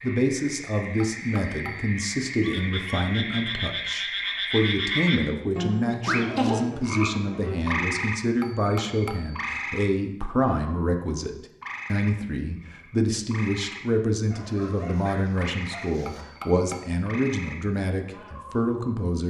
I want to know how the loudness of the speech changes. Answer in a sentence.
The loudness of the speech stays about the same.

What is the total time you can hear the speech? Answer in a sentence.
The speech can be heard for 19 seconds in total.